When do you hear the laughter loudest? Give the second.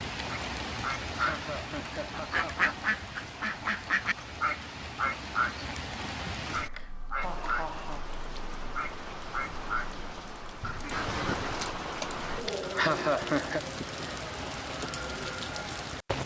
13 s.